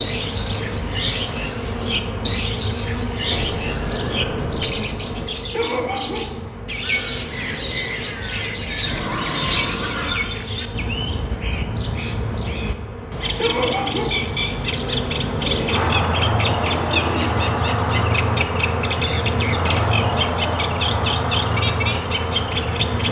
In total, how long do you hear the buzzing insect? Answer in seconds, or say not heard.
23 s.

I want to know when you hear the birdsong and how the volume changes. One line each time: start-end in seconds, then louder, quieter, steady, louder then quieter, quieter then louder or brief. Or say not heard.
0.0-23.0 steady.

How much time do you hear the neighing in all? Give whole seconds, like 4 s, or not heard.
5 s.